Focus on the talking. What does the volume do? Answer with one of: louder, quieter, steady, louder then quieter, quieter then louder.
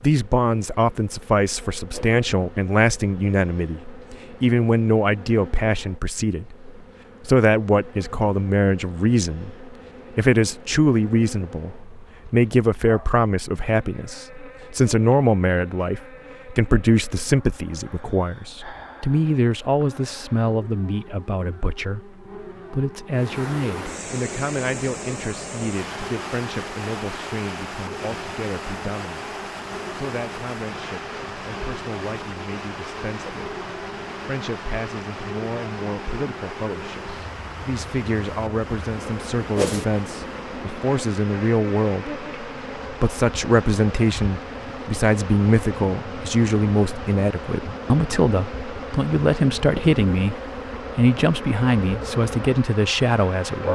quieter then louder.